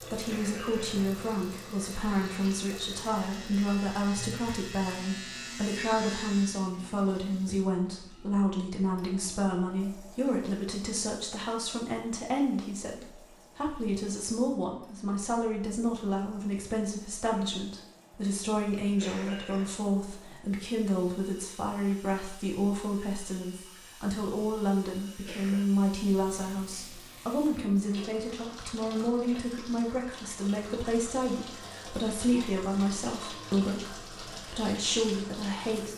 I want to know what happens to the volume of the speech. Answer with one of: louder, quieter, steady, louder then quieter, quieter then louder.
steady.